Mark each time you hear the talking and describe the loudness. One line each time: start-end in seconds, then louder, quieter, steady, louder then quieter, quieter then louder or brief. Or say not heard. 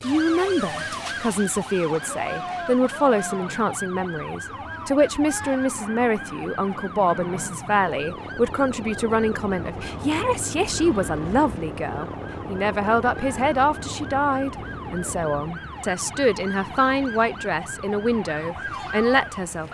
0.0-19.6 steady.